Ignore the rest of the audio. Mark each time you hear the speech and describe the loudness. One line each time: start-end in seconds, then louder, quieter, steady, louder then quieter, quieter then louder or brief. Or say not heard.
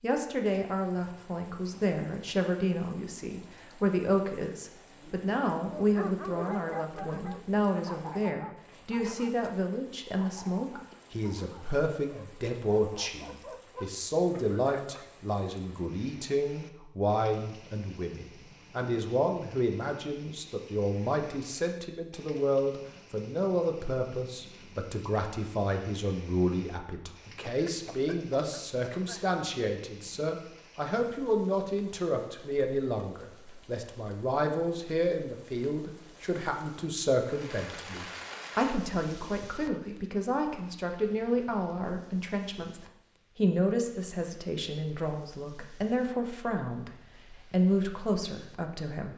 0.0-49.1 steady.